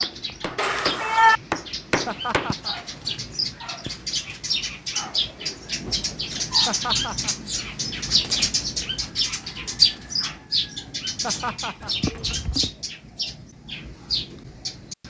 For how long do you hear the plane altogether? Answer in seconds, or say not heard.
not heard.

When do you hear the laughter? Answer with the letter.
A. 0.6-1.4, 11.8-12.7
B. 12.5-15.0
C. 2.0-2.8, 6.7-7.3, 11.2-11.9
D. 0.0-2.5
C.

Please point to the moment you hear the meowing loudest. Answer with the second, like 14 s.
1 s.